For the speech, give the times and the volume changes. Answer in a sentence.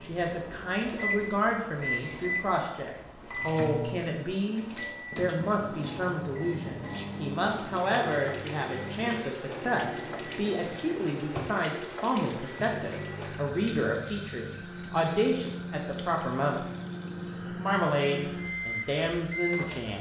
You can hear the speech from 0.0 to 19.9 s, at a steady volume.